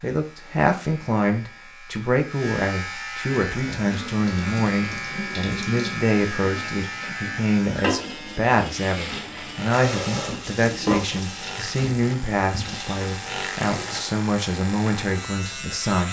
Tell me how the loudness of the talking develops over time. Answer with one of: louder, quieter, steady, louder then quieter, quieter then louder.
steady.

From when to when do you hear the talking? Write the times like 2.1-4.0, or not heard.
0.0-16.0.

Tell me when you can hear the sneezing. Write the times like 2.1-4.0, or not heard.
not heard.